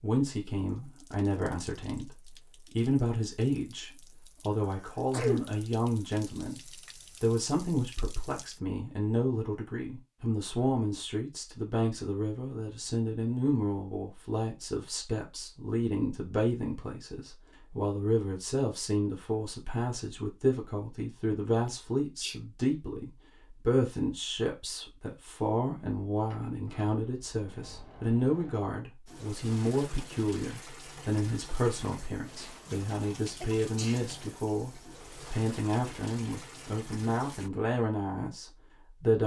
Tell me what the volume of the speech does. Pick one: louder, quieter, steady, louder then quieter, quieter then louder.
steady.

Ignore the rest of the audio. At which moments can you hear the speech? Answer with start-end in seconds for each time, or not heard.
0.0-6.6, 7.2-39.2.